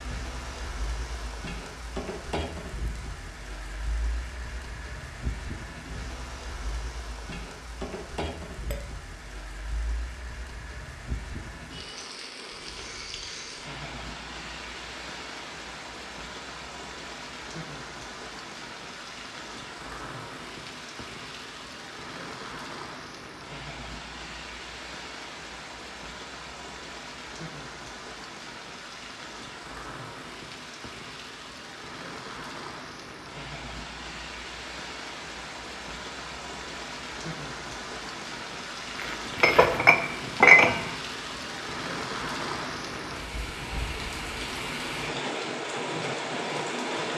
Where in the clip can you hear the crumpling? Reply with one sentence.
You can hear the crumpling from 39.0 to 39.8 s.